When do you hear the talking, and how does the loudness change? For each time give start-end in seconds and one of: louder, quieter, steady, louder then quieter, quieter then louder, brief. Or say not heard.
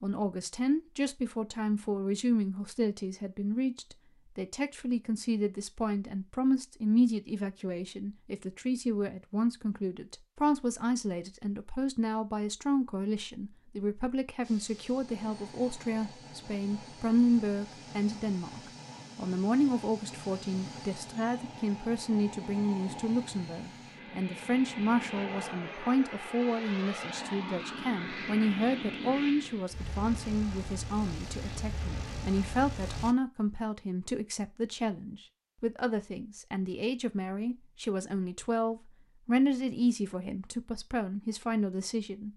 0.0-42.3 steady.